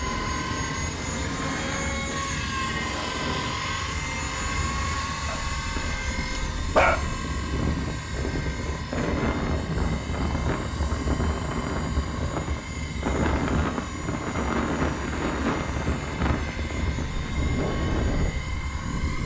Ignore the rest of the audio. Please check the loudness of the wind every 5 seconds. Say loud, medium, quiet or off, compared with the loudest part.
medium, loud, loud, loud.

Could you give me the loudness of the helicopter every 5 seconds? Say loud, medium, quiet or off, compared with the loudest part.
loud, medium, medium, medium.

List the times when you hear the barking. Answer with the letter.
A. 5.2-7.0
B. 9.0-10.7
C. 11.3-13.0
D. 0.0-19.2
A.